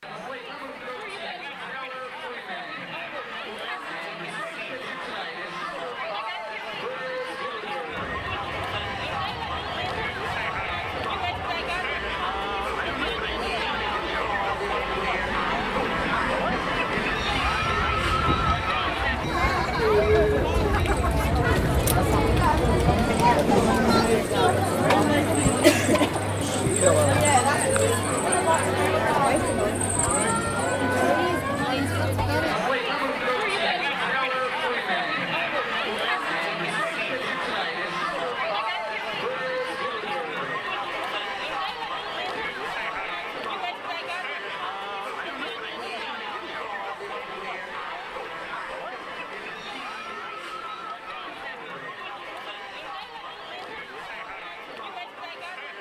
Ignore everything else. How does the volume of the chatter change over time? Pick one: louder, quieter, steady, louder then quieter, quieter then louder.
louder then quieter.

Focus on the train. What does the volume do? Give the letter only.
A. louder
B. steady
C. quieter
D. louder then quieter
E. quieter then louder
A.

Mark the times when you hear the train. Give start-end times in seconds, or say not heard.
7.8-24.2.